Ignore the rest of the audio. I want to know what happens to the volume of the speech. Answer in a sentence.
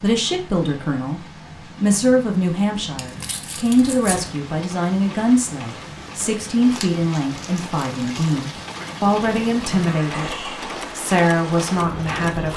The volume of the speech stays about the same.